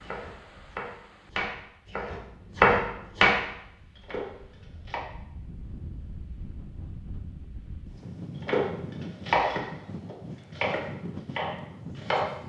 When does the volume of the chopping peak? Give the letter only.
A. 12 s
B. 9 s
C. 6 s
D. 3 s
D.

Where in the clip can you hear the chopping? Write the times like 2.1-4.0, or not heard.
0.0-5.0, 8.4-12.3.